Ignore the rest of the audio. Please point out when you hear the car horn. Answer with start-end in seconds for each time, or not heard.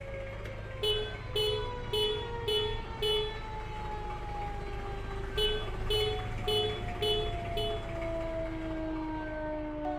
0.8-3.2, 5.3-7.7.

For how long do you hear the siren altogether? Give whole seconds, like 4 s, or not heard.
10 s.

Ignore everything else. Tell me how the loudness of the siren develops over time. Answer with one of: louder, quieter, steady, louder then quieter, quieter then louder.
louder.